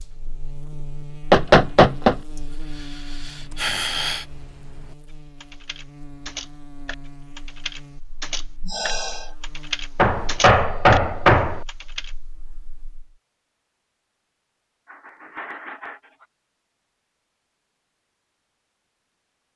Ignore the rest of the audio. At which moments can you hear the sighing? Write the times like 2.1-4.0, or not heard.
2.4-4.2, 8.6-9.3, 14.8-16.2.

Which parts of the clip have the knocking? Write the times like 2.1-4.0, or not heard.
1.3-2.1, 9.9-11.6.